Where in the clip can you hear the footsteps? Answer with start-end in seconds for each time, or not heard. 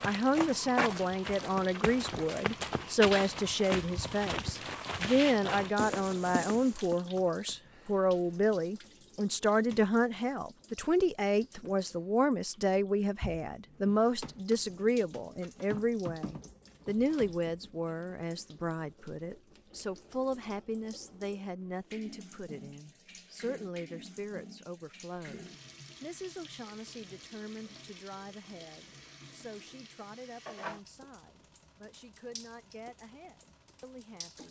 0.0-7.0.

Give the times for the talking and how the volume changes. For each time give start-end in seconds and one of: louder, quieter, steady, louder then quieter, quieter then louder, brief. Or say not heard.
0.0-34.4 quieter.